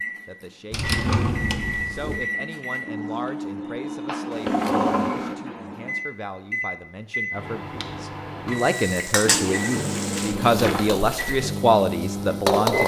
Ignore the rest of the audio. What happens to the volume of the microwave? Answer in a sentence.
The volume of the microwave stays about the same.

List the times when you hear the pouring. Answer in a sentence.
The pouring can't be heard in this clip.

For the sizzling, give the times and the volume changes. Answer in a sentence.
The sizzling can be heard from 8.6 to 12.8 s, getting quieter.